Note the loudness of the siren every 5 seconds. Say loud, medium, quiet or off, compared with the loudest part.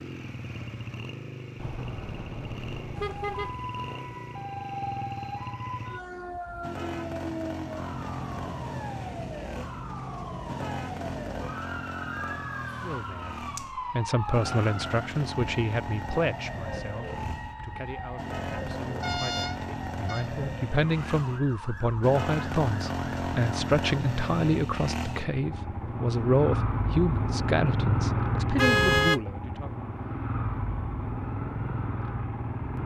loud, loud, loud, loud, medium, off, off.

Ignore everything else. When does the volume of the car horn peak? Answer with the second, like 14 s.
29 s.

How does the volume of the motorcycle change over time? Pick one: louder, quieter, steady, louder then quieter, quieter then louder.
louder.